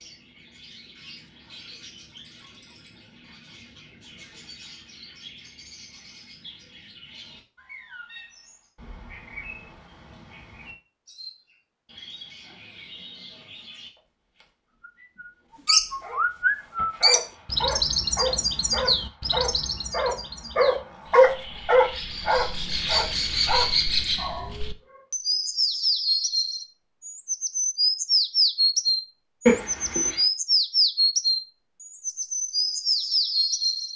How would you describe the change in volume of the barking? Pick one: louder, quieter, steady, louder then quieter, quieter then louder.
louder then quieter.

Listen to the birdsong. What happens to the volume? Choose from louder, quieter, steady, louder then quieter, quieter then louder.
louder.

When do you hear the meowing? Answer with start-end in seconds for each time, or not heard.
29.4-30.2.